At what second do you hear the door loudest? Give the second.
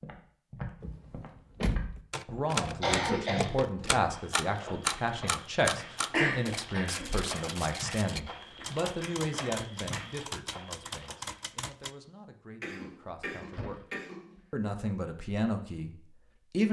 2 s.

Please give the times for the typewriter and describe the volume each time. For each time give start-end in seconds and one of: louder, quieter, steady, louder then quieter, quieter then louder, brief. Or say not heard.
2.1-11.9 quieter.